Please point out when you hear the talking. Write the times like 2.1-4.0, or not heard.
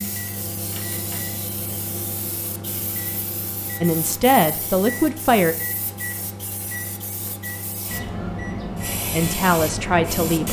3.8-5.5, 9.1-10.4.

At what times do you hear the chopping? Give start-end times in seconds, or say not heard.
not heard.